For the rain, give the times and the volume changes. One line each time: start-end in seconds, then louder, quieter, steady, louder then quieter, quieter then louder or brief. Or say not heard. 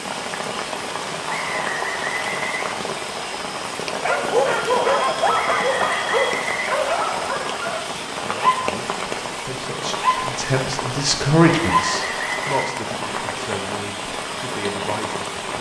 0.0-15.5 steady.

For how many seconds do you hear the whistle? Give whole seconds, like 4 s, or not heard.
5 s.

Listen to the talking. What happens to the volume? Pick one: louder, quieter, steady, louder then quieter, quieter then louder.
louder then quieter.